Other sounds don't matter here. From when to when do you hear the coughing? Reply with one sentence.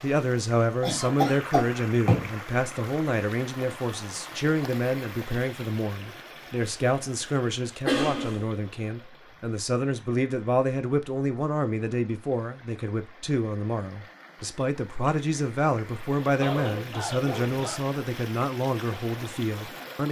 The coughing can be heard from 0.8 to 2.3 s, from 7.8 to 8.4 s and from 16.4 to 17.9 s.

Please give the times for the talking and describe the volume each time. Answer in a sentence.
The talking can be heard from 0.0 to 20.0 s, at a steady volume.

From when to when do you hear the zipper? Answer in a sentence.
The zipper can be heard from 16.4 to 17.6 s.